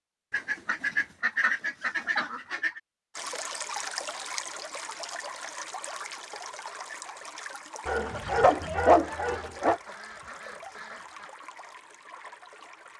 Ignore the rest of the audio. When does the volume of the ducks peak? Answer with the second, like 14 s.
1 s.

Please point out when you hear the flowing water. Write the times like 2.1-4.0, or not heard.
3.1-12.9.